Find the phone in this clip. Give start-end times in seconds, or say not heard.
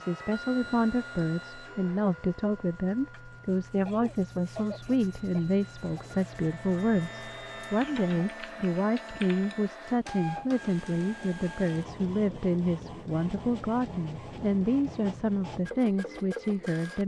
not heard.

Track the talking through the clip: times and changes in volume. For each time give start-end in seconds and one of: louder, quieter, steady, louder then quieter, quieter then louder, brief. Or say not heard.
0.0-17.0 steady.